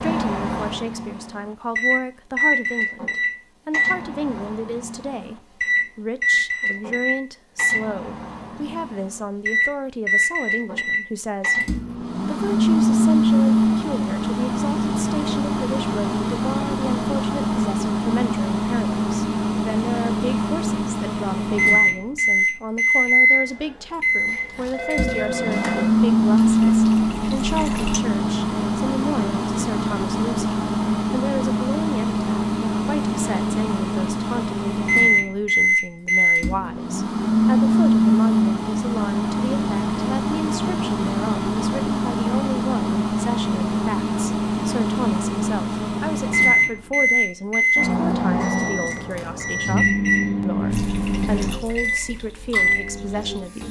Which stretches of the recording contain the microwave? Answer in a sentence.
You can hear the microwave from 0.0 to 53.6 s.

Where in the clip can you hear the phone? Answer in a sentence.
The phone can be heard from 24.2 to 26.8 s.